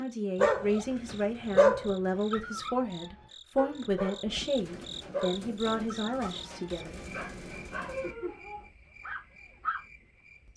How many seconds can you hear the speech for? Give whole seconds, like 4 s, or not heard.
7 s.